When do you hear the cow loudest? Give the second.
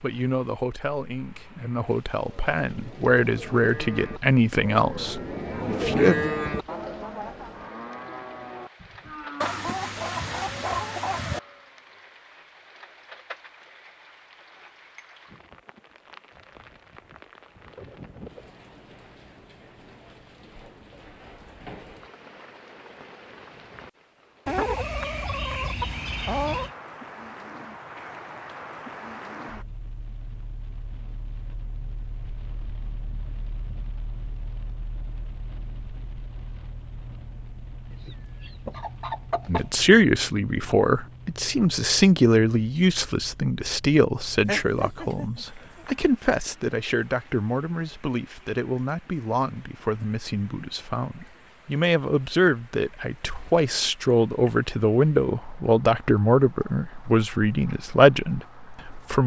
6 s.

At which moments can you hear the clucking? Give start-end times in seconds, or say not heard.
9.4-11.4, 24.4-26.7, 37.9-39.7, 44.5-45.9.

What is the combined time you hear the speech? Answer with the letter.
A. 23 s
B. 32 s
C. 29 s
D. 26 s
D.